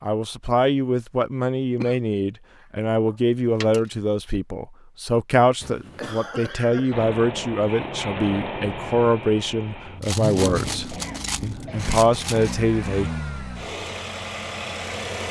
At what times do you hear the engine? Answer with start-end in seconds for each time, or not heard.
6.9-15.2.